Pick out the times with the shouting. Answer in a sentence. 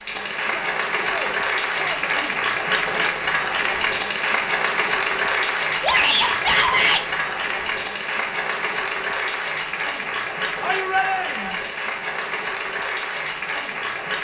The shouting can be heard from 0.3 to 2.2 s, from 5.8 to 7.0 s and from 10.6 to 11.6 s.